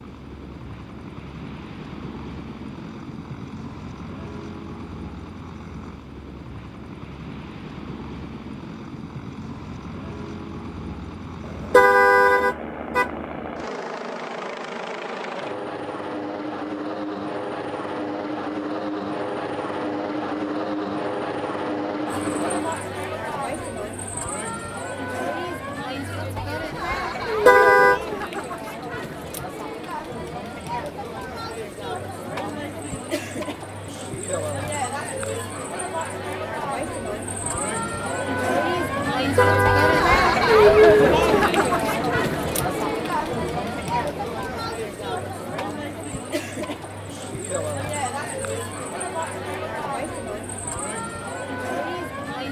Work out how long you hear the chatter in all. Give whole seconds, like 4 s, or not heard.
30 s.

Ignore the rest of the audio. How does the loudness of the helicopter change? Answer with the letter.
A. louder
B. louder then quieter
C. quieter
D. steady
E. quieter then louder
A.